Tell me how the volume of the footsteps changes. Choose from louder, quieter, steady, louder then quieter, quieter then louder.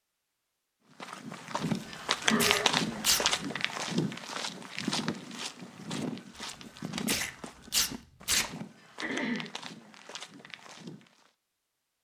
quieter.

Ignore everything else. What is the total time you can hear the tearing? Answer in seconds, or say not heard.
4 s.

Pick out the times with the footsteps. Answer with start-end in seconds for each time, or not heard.
1.0-11.3.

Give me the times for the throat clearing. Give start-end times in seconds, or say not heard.
2.2-2.8, 8.4-9.5.